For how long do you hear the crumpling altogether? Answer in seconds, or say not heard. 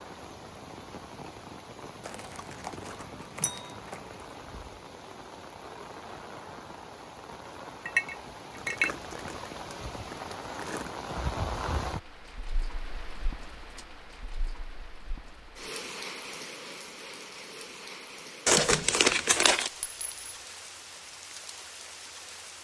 6 s.